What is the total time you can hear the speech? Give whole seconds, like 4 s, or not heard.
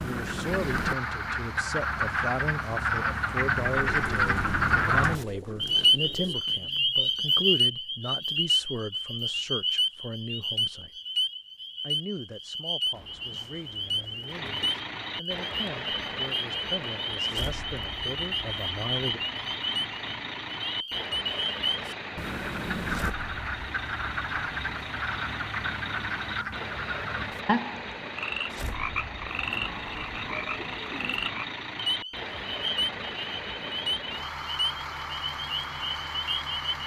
18 s.